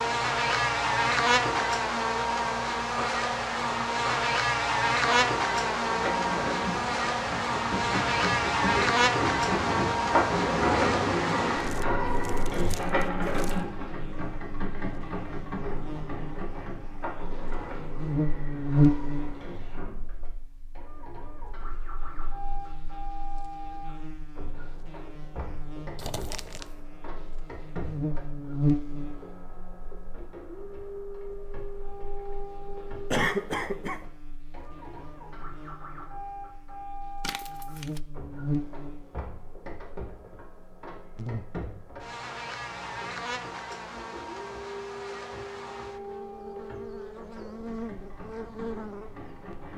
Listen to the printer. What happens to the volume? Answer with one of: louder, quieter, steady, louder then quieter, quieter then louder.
quieter.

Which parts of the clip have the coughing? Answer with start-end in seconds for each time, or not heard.
33.1-34.0.